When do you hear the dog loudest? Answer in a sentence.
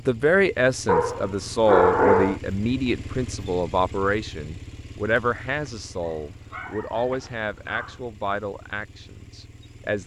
The loudest moment of the dog is at 2 seconds.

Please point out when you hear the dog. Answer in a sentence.
The dog can be heard from 0.8 to 2.4 s and from 5.7 to 8.0 s.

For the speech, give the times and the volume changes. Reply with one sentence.
You can hear the speech from 0.1 to 10.0 s, getting quieter.